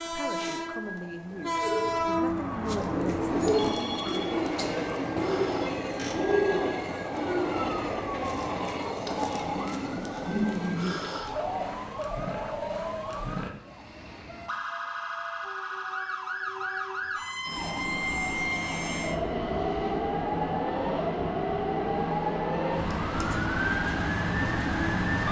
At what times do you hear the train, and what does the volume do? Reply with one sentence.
The train can be heard from 0.0 to 25.2 s, getting quieter then louder.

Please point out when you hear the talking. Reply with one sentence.
You can hear the talking from 0.0 to 4.5 s.